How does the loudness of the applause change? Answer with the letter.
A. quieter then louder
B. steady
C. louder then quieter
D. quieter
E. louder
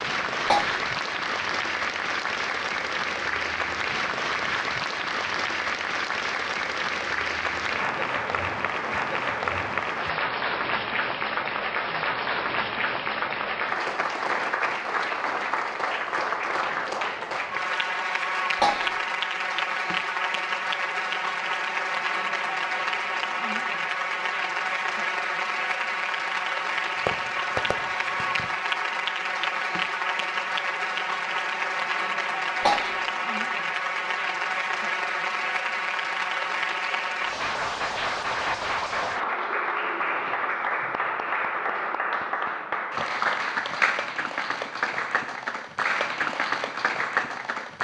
B.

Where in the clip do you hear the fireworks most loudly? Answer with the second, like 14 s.
27 s.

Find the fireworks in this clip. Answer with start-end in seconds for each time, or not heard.
26.9-28.6.